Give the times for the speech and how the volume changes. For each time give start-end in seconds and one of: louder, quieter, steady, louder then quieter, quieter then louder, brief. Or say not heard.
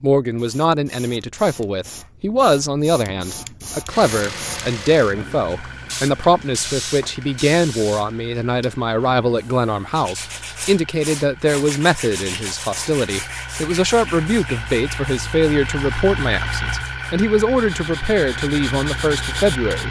0.0-19.8 steady.